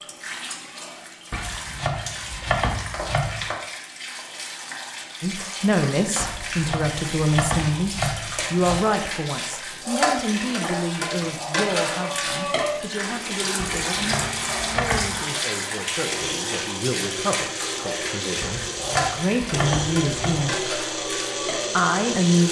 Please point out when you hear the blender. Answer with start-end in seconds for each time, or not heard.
12.9-22.4.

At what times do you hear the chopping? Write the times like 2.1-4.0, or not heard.
1.3-3.5, 6.2-8.8, 13.6-15.2, 18.4-20.6.